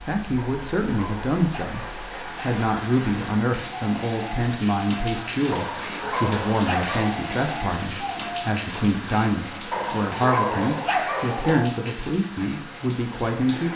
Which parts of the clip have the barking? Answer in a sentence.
You can hear the barking from 0.3 to 2.6 s, from 5.5 to 7.1 s and from 9.7 to 11.7 s.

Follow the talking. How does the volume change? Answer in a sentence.
The loudness of the talking stays about the same.